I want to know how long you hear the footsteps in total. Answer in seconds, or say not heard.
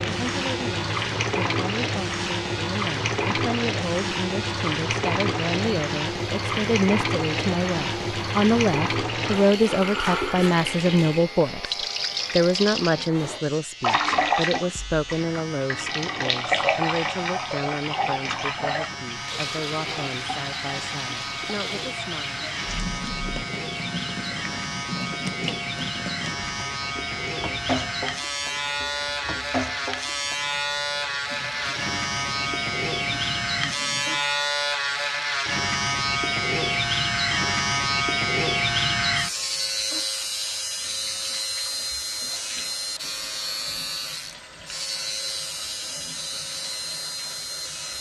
not heard.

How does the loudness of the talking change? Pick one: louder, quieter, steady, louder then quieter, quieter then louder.
louder then quieter.